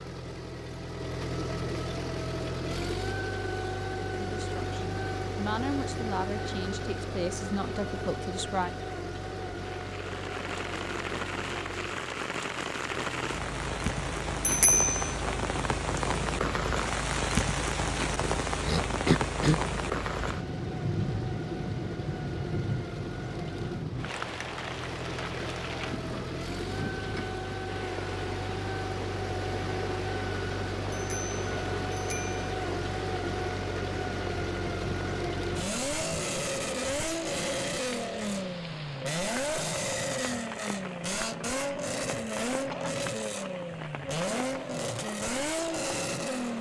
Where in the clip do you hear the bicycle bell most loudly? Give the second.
15 s.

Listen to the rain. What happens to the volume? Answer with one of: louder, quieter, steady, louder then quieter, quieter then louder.
quieter.